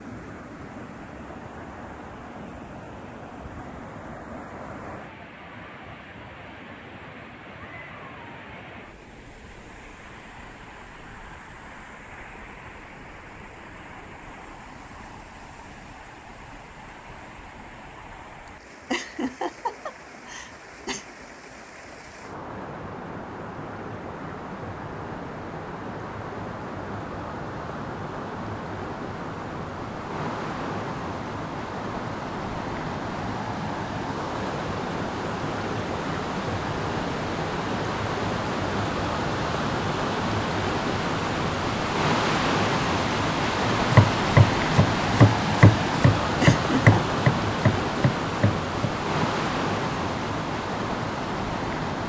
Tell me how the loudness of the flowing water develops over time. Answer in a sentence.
The loudness of the flowing water goes up.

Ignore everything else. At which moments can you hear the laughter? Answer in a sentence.
The laughter can be heard from 18.9 to 21.1 s and from 46.4 to 47.0 s.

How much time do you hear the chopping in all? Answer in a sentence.
You can hear the chopping for 6 seconds altogether.